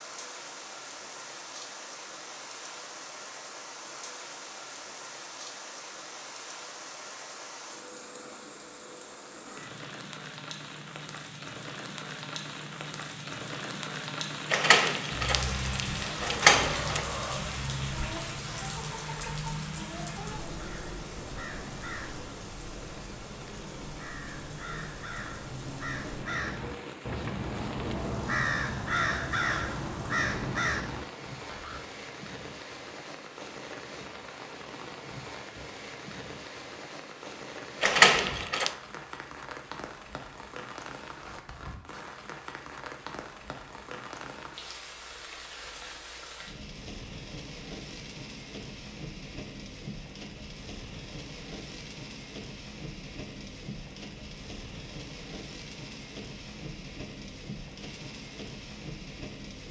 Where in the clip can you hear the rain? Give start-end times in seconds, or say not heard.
0.0-59.6.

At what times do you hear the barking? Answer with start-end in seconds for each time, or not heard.
not heard.